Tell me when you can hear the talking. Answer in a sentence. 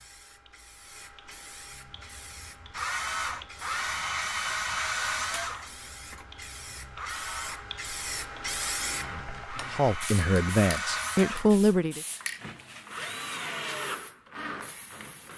The talking can be heard from 9.7 to 12.0 s.